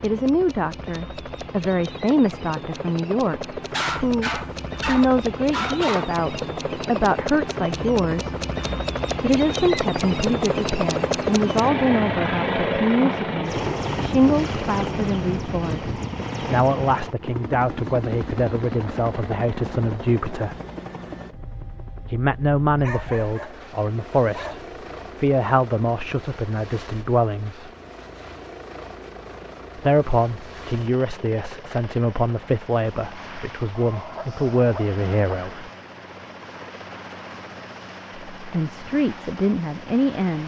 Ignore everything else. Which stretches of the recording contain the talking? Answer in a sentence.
The talking can be heard from 0.0 to 8.3 s, from 9.2 to 20.6 s, from 22.1 to 24.6 s, from 25.2 to 27.7 s, from 29.8 to 35.7 s and from 38.4 to 40.4 s.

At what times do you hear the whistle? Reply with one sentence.
The whistle can't be heard in this clip.